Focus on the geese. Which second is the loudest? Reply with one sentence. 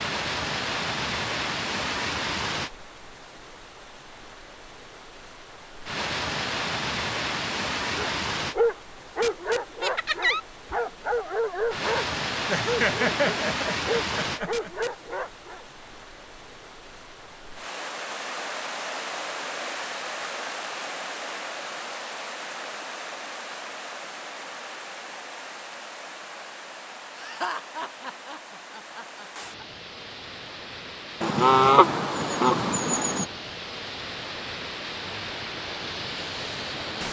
The volume of the geese peaks at 32 seconds.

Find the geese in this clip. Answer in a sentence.
The geese can be heard from 31.2 to 33.2 s.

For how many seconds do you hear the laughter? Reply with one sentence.
You can hear the laughter for 5 seconds altogether.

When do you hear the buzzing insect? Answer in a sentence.
You can't hear the buzzing insect here.